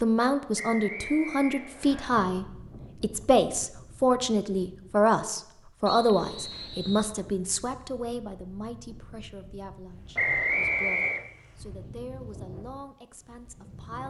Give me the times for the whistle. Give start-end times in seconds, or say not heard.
0.6-2.1, 5.8-7.2, 10.2-11.2.